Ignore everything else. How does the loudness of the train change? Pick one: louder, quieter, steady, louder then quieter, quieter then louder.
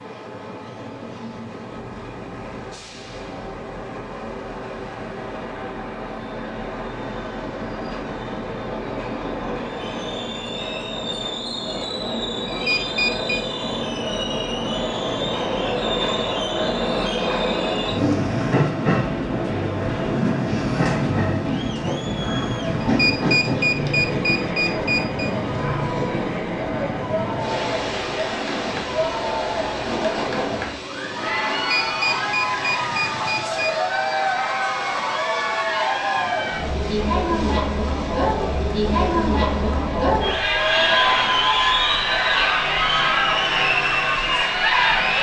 louder then quieter.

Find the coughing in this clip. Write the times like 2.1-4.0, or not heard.
not heard.